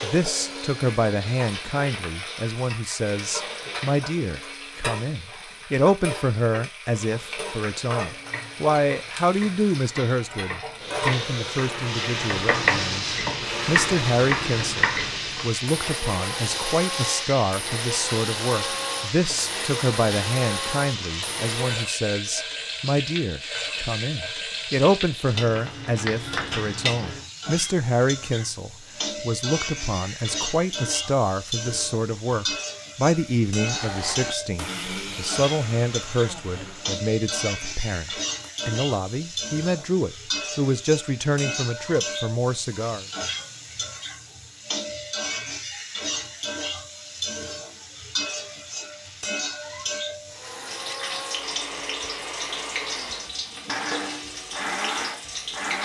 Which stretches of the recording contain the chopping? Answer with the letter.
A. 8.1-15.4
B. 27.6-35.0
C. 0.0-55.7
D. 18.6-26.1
A.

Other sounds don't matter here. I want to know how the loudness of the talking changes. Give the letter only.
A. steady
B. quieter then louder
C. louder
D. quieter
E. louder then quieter
A.